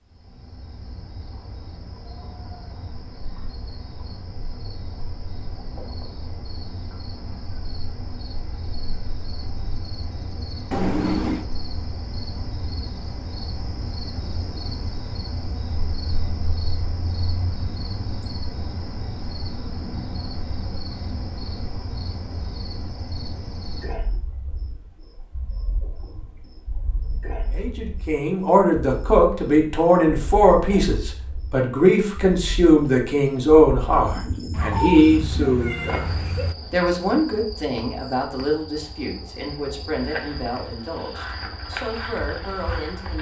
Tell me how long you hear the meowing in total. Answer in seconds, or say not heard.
3 s.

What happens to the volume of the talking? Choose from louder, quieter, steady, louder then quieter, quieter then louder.
quieter.